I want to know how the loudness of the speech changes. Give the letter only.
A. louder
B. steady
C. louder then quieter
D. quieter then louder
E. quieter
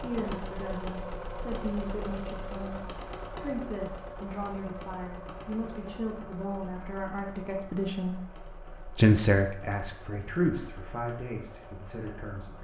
C.